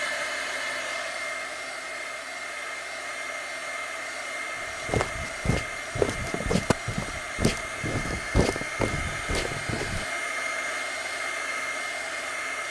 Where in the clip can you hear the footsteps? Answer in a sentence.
You can hear the footsteps from 4.8 to 10.1 s.